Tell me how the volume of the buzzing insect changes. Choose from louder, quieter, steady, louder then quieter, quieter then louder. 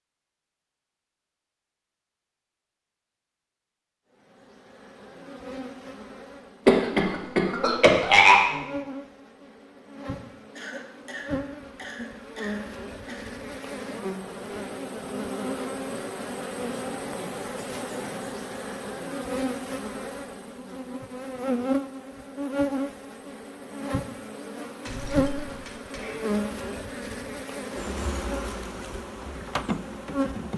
louder.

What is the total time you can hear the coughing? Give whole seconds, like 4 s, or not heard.
6 s.